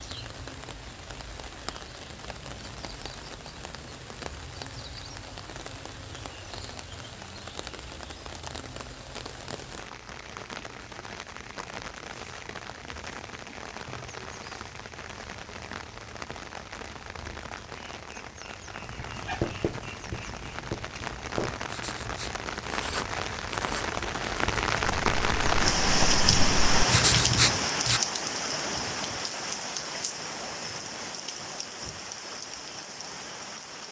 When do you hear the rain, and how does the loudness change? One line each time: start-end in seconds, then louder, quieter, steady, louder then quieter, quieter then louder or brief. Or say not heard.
0.0-33.8 louder.